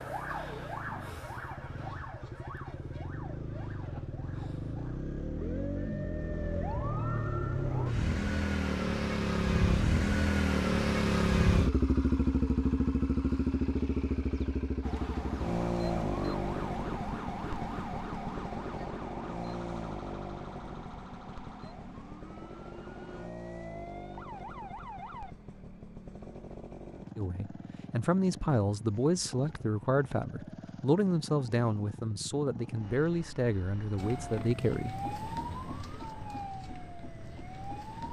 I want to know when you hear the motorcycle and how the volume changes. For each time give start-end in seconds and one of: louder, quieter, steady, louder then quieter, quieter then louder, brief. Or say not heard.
0.0-38.0 louder then quieter.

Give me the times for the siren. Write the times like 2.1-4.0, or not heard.
0.0-8.0, 14.8-25.4, 34.0-38.0.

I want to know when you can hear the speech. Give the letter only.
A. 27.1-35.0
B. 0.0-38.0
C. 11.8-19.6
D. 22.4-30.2
A.